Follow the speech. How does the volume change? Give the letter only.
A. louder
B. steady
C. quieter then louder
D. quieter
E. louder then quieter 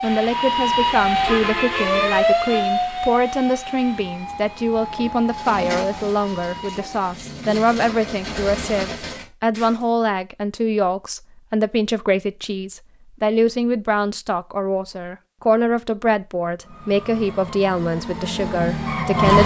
B.